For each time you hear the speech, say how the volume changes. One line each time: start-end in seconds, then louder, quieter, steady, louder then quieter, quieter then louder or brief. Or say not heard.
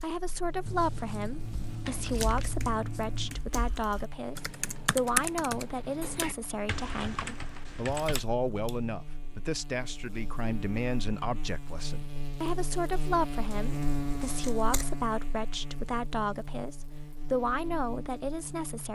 0.0-18.9 steady.